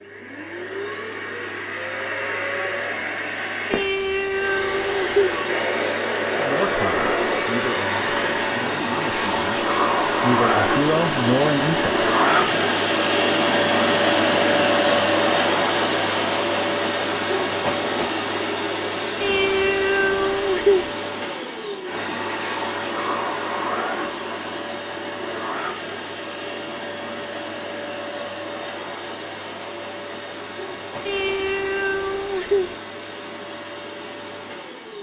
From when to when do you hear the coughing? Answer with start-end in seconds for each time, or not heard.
not heard.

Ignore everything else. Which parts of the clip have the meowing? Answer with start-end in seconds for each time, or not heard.
3.7-5.4, 19.2-20.9, 31.1-32.8.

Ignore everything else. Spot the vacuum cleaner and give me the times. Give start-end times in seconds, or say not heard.
0.0-34.9.